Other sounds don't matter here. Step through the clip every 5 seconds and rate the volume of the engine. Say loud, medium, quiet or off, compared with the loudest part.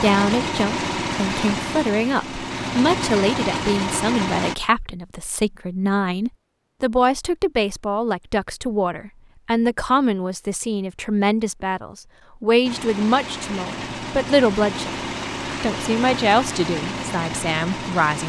loud, off, medium, loud.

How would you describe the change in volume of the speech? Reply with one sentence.
The volume of the speech stays about the same.